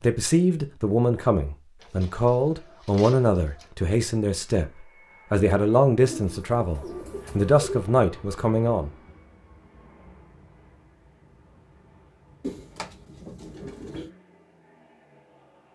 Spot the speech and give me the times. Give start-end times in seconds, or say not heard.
0.0-8.9.